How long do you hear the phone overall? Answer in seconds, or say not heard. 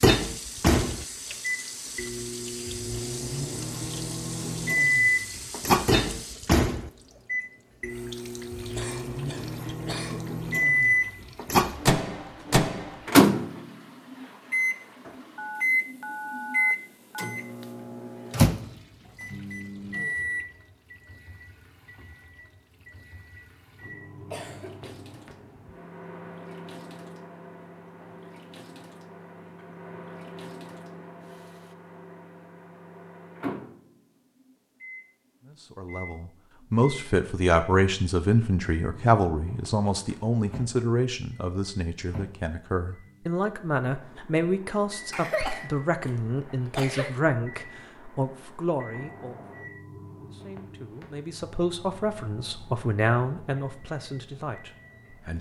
2 s.